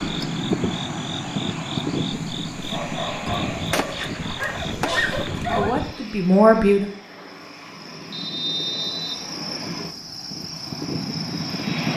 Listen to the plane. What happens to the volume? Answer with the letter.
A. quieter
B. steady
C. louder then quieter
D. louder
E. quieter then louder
E.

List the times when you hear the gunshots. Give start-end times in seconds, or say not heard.
3.2-6.0.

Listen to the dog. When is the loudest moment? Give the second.
5 s.